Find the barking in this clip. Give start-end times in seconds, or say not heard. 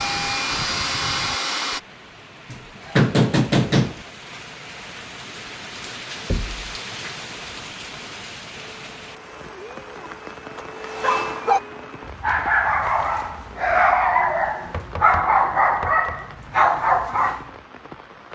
11.0-17.5.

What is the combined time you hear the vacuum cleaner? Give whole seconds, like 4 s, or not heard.
5 s.